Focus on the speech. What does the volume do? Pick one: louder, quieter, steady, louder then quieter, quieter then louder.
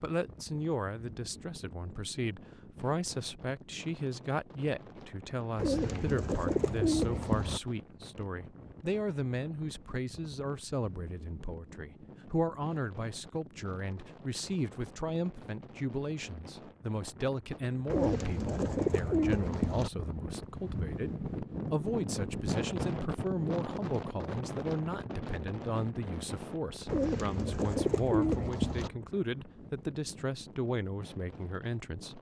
steady.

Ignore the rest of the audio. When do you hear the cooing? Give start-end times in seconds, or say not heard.
5.5-7.6, 17.9-19.9, 26.9-28.9.